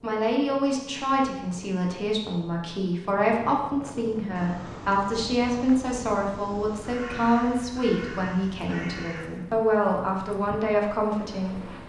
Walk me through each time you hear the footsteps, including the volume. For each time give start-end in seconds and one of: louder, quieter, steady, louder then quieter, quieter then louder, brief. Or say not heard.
not heard.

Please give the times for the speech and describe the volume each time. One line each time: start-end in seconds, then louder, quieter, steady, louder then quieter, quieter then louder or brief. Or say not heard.
0.0-11.7 steady.